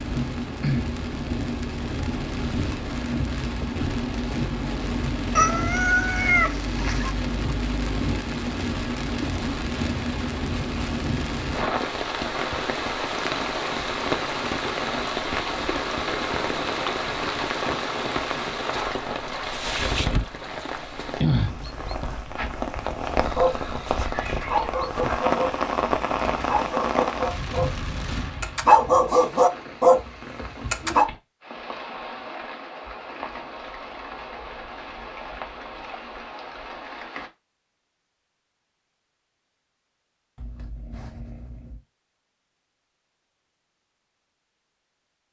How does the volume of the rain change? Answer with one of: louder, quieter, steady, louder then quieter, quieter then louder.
quieter.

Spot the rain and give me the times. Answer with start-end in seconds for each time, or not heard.
0.0-37.3.